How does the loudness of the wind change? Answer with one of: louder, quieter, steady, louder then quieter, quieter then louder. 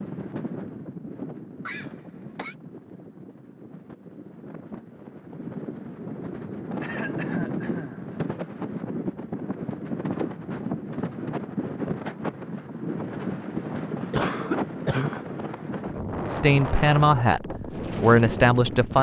louder.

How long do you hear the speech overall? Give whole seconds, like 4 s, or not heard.
3 s.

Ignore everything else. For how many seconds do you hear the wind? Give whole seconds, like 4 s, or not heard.
19 s.